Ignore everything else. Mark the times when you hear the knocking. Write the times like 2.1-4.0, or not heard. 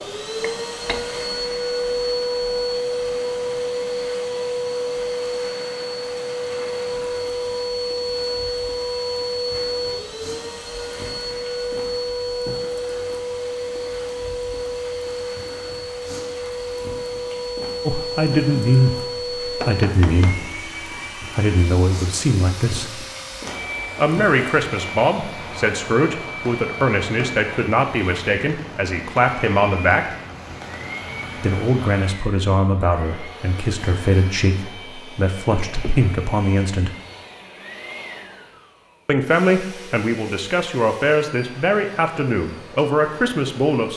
0.4-1.1, 19.6-20.5, 35.5-36.1.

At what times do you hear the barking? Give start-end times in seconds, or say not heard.
not heard.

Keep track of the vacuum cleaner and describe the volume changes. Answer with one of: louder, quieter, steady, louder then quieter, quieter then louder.
quieter.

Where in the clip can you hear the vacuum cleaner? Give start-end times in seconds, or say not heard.
0.0-43.9.